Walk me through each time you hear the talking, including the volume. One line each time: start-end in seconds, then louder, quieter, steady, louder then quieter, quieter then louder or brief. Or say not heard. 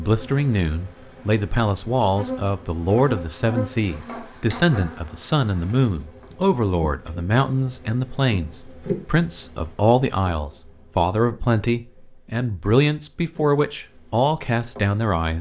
0.0-15.3 steady.